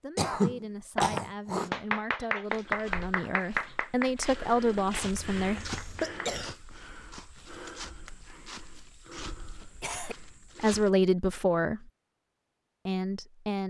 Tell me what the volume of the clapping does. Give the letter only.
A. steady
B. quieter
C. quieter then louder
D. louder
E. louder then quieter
B.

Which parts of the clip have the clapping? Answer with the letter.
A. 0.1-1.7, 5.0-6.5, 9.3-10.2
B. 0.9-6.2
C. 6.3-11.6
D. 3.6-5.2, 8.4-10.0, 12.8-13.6
B.